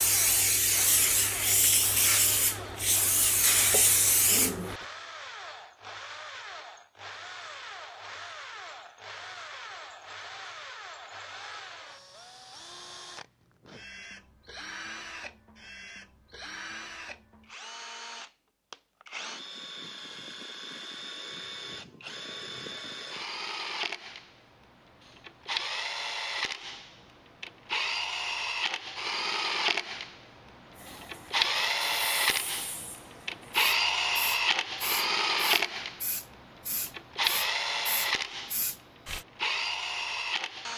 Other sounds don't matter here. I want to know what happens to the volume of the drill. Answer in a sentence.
The loudness of the drill goes up.